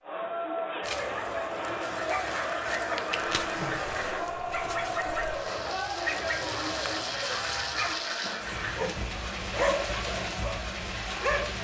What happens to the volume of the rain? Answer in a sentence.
The volume of the rain goes up.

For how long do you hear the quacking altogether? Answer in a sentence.
You can hear the quacking for 5 seconds altogether.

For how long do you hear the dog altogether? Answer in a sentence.
The dog can be heard for 11 seconds in total.